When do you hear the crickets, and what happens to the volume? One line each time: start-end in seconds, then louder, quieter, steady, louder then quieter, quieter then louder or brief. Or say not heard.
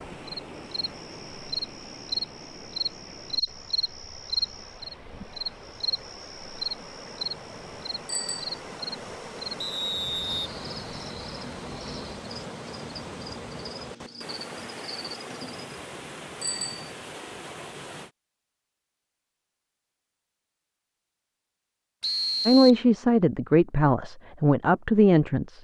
0.0-15.8 quieter.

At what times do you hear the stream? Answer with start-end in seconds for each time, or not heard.
0.0-18.1.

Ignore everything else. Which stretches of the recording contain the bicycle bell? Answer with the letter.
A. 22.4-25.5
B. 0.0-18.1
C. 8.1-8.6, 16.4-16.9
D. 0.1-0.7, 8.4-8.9
C.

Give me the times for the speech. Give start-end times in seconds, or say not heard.
22.4-25.5.